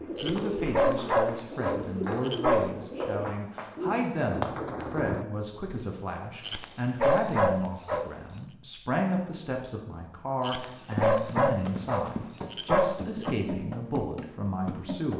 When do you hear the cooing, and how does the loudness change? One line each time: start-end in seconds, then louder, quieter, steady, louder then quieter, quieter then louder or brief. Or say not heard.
0.0-5.2 steady.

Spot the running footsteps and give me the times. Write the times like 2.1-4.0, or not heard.
0.0-4.8, 10.8-15.1.